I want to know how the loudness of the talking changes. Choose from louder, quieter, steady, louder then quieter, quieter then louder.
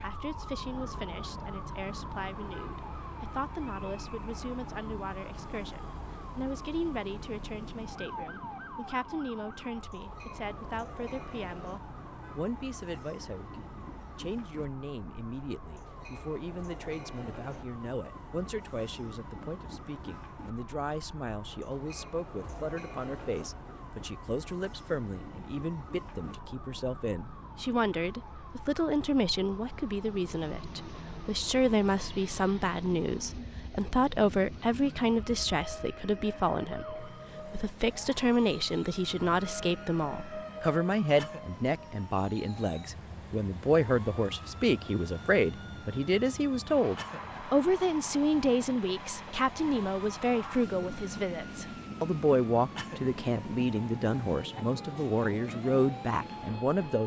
louder.